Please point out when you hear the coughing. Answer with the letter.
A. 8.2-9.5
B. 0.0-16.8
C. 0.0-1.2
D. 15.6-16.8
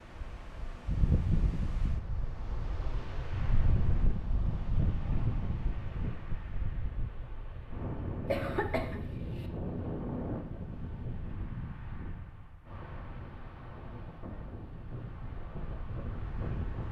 A.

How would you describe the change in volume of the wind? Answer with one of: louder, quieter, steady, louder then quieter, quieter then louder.
quieter.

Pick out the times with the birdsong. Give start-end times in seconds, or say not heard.
not heard.